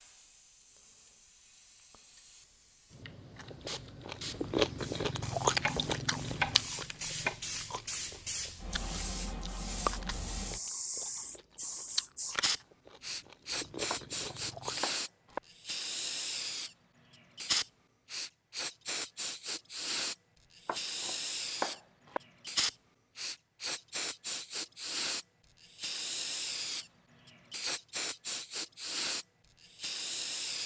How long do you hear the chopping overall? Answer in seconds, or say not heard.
5 s.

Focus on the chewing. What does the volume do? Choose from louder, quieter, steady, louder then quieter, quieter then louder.
quieter.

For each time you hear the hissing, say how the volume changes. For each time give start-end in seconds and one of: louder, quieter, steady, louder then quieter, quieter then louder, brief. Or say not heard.
0.0-30.6 louder.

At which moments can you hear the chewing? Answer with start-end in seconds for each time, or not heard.
3.4-14.8.